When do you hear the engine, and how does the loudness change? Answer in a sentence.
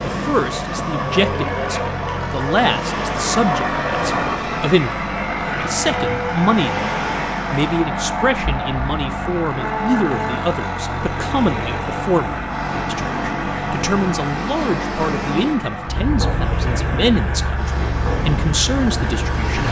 You can hear the engine from 0.0 to 19.6 s, at a steady volume.